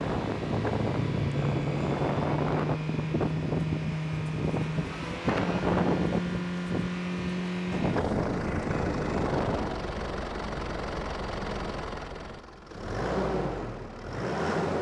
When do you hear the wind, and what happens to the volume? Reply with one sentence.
The wind can be heard from 0.0 to 9.8 s, at a steady volume.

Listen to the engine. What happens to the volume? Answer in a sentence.
The volume of the engine stays about the same.